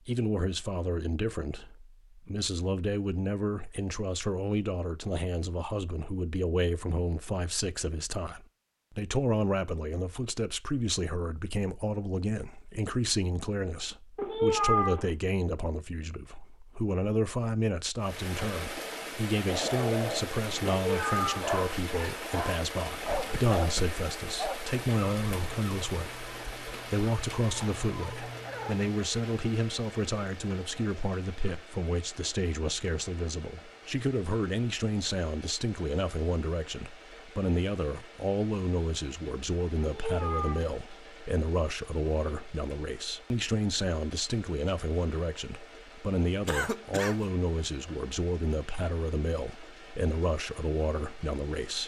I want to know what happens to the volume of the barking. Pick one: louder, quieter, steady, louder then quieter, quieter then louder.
quieter then louder.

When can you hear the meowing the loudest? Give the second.
15 s.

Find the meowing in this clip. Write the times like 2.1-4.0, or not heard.
14.2-15.1, 20.9-21.4, 39.8-40.8.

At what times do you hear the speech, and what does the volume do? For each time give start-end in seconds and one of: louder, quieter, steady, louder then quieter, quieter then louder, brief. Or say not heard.
0.1-51.8 steady.